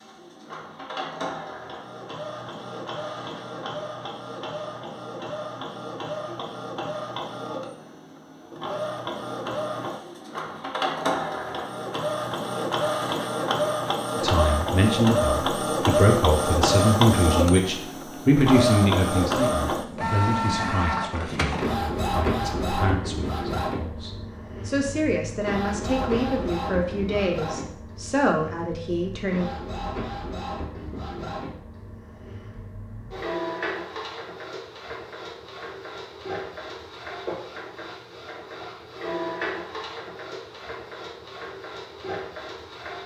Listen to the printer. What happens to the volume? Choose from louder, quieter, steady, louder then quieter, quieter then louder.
louder then quieter.